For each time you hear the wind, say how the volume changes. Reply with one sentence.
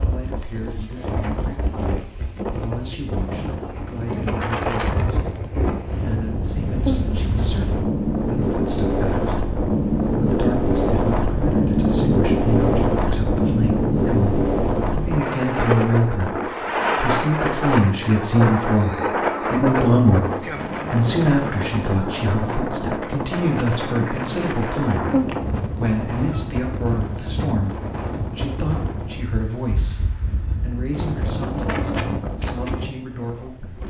The wind can be heard from 0.0 to 33.8 s, getting louder then quieter.